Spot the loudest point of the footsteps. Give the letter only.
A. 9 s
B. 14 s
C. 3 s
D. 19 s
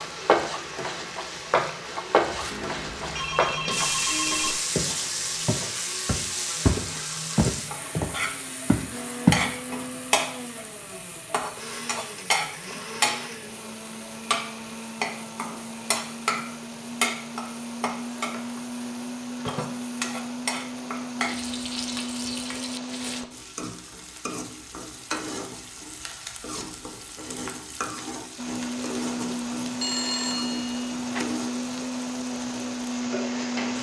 A.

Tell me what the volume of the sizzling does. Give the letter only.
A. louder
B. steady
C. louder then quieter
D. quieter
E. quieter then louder
D.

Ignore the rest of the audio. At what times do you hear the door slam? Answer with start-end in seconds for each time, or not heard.
not heard.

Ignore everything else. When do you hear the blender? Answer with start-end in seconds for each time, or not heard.
0.0-23.2, 28.4-33.7.